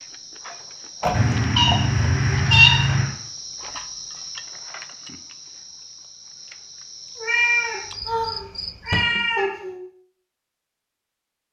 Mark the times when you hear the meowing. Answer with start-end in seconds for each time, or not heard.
1.1-3.1, 7.2-9.8.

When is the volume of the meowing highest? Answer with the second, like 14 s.
3 s.